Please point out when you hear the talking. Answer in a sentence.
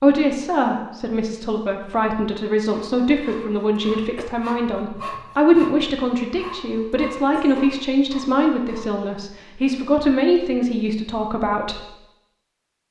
You can hear the talking from 0.0 to 11.8 s.